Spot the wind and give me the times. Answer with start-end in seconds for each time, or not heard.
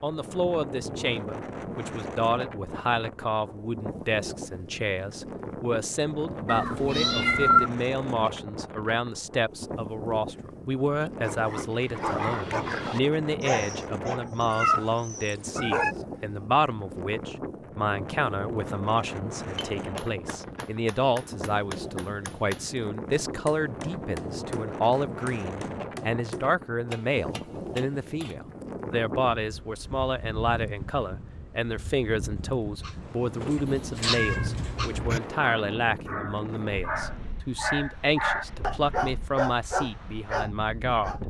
0.0-41.2.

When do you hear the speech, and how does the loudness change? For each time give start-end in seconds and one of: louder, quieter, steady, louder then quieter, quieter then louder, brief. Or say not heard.
0.0-41.1 steady.